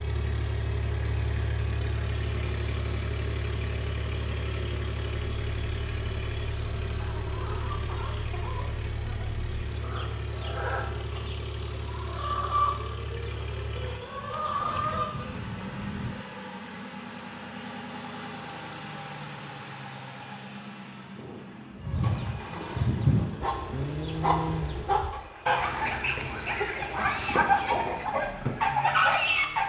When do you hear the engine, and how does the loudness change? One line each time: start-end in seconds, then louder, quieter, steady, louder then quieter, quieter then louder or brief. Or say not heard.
0.0-29.6 quieter.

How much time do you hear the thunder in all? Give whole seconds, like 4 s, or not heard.
2 s.